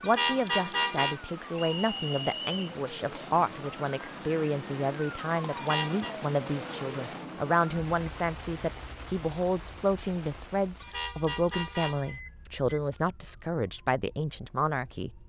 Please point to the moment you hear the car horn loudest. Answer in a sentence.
The volume of the car horn peaks at 1 second.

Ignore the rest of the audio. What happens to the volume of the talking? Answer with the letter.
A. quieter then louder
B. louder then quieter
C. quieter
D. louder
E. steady
E.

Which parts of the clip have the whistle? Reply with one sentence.
The whistle can be heard from 1.6 to 2.8 s.